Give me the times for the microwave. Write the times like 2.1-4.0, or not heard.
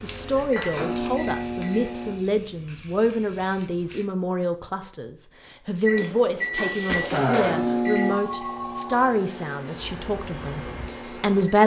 0.0-2.1, 5.8-11.6.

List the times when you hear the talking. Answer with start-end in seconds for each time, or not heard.
0.0-11.6.